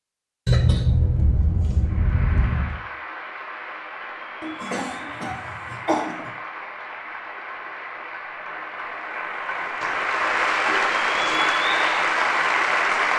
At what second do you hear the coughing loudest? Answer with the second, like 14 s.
1 s.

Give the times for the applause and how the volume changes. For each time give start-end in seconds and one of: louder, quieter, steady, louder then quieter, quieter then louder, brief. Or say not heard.
1.8-13.1 louder.